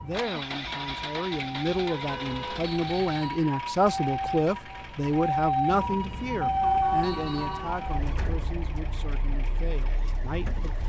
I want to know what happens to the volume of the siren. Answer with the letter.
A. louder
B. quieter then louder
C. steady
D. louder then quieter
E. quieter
D.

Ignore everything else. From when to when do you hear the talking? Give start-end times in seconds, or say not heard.
0.0-10.8.